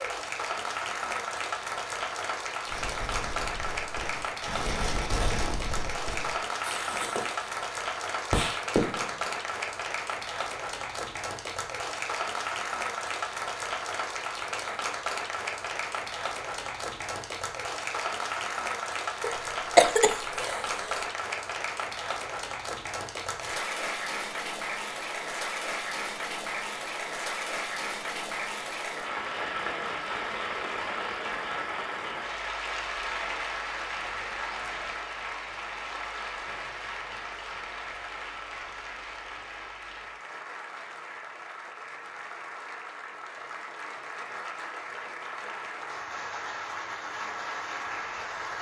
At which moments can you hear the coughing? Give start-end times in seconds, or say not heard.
19.2-21.0.